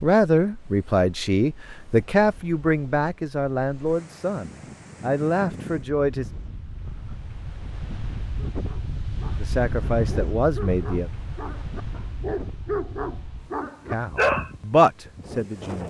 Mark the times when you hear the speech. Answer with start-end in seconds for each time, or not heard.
0.0-6.2, 9.4-11.1, 13.9-15.8.